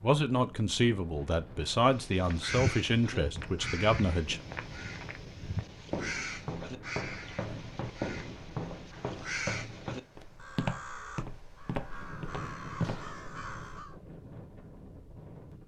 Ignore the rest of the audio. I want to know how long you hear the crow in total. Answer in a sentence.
The crow can be heard for 12 seconds in total.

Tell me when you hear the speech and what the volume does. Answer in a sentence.
The speech can be heard from 0.0 to 4.4 s, at a steady volume.